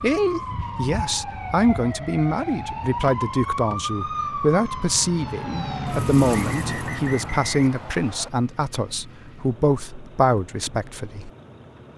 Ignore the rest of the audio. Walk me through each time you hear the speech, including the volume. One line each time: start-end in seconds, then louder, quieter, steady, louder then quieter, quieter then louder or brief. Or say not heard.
0.0-11.3 steady.